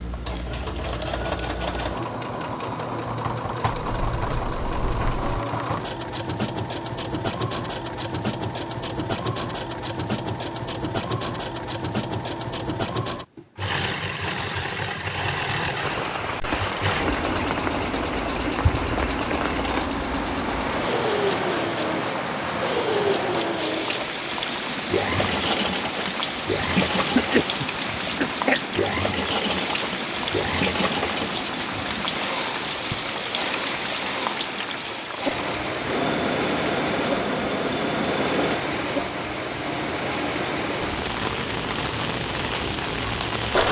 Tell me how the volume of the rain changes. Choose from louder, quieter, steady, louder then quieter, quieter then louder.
steady.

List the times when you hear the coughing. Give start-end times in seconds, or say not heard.
26.8-28.6.